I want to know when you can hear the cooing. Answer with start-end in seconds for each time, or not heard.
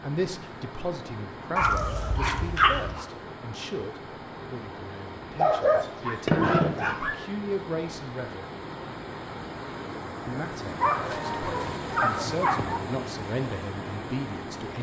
not heard.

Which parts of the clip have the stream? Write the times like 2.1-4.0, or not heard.
0.0-14.7.